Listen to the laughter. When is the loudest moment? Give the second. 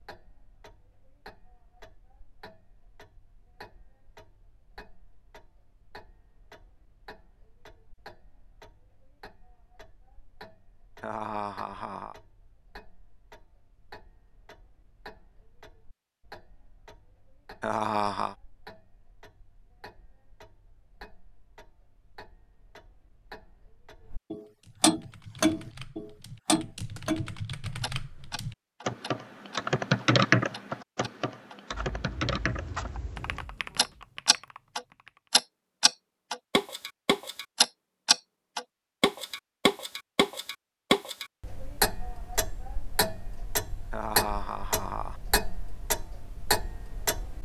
18 s.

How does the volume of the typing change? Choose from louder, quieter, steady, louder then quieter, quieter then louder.
louder then quieter.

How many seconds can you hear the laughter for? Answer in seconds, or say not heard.
3 s.